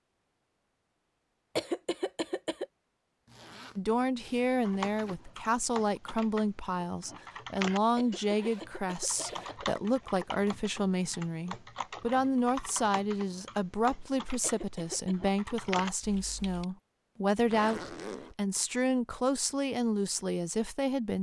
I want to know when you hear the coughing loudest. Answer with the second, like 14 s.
2 s.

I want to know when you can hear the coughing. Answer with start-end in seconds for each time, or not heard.
1.6-2.6, 8.0-9.7, 14.4-15.3.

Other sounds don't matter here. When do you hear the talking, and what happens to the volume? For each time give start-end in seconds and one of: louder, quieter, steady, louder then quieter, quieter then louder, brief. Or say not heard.
3.8-21.1 steady.